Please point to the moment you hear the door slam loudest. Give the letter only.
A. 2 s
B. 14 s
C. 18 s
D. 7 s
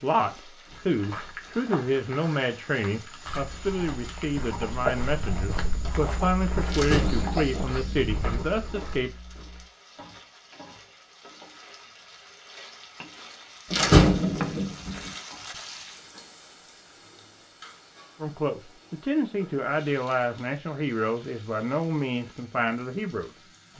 B.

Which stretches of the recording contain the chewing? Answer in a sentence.
The chewing can be heard from 3.5 to 9.7 s.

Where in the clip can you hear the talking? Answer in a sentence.
You can hear the talking from 0.0 to 9.1 s and from 18.2 to 23.7 s.